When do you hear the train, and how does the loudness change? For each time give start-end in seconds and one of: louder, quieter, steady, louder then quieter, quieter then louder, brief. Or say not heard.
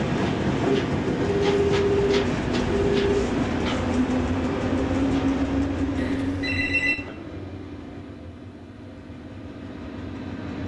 0.0-10.6 quieter.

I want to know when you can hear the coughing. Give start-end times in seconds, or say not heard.
not heard.